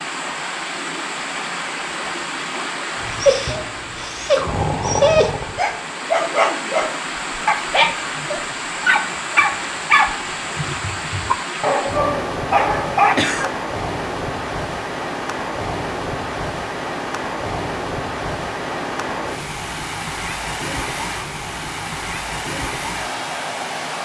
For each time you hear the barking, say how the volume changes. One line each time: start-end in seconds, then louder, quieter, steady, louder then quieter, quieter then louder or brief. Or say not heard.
3.0-13.5 steady.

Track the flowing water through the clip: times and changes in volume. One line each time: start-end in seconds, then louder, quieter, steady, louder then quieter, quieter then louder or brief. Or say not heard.
0.0-24.0 steady.